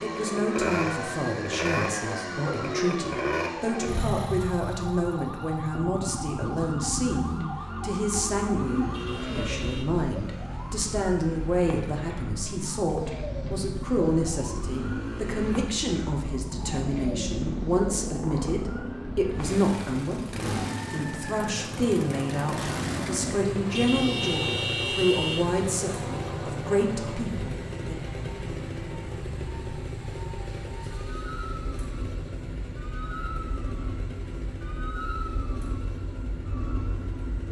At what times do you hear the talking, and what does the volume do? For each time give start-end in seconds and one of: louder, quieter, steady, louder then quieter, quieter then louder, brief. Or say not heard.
0.0-28.0 steady.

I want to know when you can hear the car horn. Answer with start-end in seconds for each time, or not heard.
8.9-9.8, 23.7-25.4.